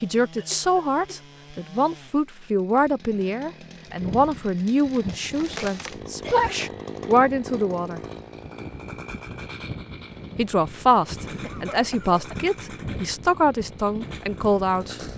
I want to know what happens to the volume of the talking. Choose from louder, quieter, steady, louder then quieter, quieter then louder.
steady.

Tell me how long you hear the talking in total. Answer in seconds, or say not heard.
13 s.